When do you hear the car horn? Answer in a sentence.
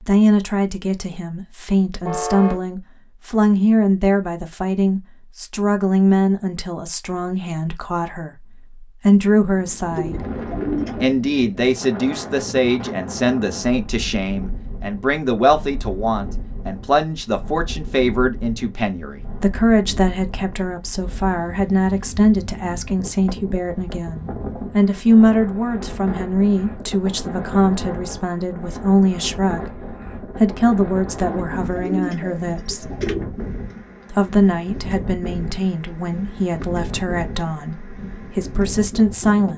The car horn can be heard from 2.0 to 2.6 s.